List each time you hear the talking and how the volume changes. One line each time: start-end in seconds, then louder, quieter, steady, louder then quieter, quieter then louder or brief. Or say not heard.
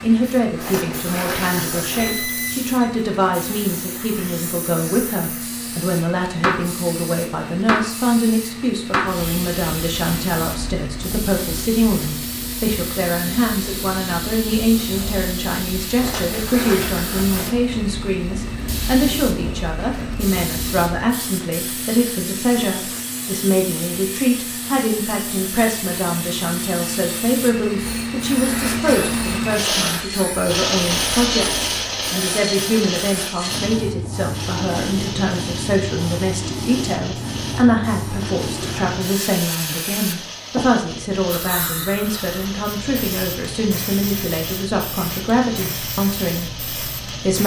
0.0-47.4 steady.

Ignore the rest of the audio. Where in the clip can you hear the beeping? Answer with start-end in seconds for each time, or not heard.
1.9-2.9.